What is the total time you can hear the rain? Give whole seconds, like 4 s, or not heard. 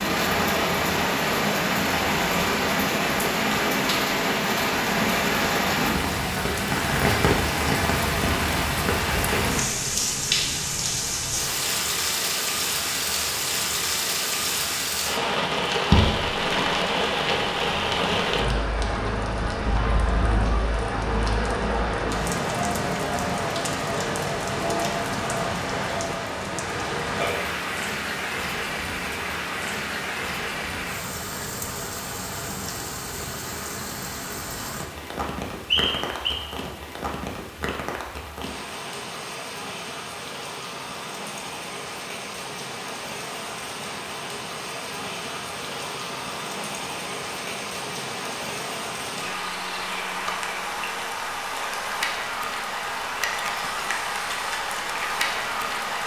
56 s.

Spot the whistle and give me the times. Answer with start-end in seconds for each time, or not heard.
35.7-36.4.